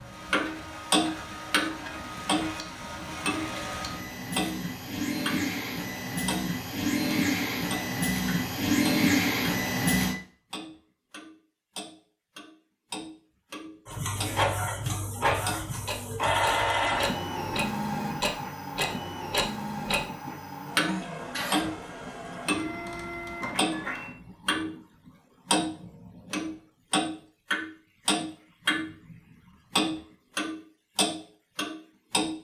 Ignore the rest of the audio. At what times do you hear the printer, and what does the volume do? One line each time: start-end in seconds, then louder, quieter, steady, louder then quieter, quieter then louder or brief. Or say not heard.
0.0-10.2 louder
13.8-24.1 quieter.